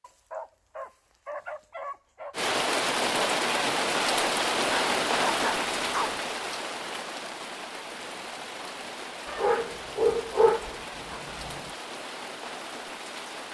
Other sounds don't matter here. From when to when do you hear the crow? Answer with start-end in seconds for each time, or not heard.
not heard.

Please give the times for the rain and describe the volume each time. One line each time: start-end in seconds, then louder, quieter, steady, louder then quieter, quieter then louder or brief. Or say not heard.
2.3-13.4 quieter.